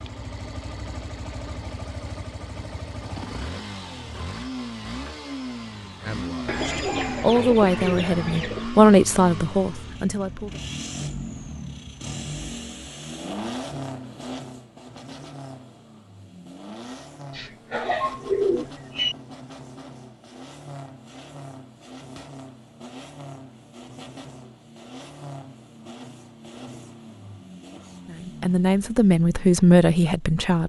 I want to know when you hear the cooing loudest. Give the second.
18 s.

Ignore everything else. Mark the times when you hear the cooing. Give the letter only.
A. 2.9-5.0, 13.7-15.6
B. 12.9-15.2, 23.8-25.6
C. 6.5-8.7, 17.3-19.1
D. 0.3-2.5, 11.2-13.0
C.